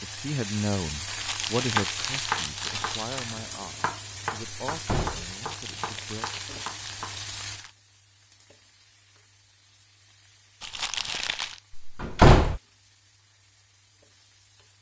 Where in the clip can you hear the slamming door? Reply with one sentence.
You can hear the slamming door from 4.7 to 5.3 s and from 11.8 to 12.6 s.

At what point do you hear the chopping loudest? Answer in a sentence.
The loudest moment of the chopping is at 2 seconds.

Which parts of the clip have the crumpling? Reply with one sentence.
You can hear the crumpling from 1.1 to 3.4 s, from 5.3 to 7.8 s and from 10.6 to 11.6 s.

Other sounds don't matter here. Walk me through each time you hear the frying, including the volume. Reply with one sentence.
You can hear the frying from 0.0 to 14.7 s, getting quieter.